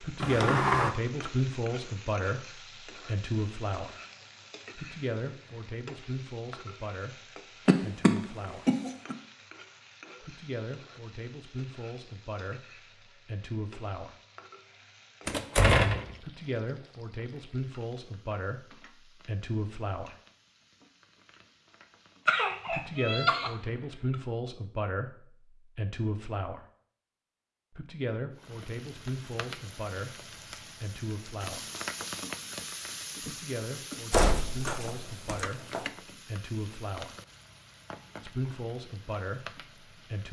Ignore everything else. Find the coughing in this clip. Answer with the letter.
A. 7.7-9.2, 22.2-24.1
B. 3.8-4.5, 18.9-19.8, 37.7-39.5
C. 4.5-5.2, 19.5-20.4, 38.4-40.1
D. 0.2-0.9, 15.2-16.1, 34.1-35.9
A.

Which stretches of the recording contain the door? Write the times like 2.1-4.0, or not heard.
0.2-0.9, 15.2-16.1, 34.1-35.9.